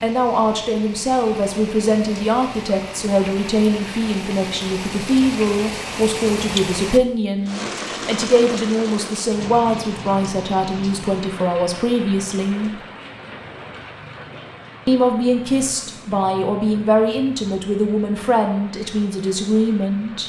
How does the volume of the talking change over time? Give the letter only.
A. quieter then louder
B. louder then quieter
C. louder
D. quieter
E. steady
E.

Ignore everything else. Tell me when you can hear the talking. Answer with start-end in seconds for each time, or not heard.
0.0-12.8, 14.8-20.2.